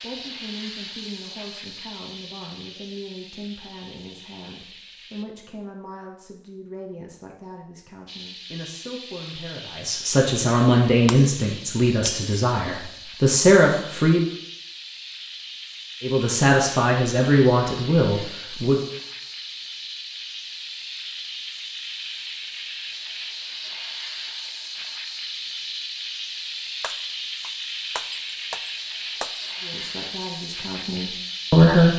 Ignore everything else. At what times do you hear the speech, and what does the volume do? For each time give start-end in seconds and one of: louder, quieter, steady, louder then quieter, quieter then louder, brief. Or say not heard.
0.0-14.2 louder
16.0-18.8 brief
29.6-31.9 brief.